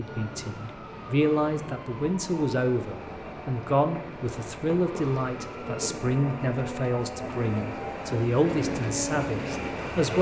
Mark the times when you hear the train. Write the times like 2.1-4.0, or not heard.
0.0-10.1.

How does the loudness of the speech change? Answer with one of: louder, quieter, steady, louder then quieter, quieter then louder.
steady.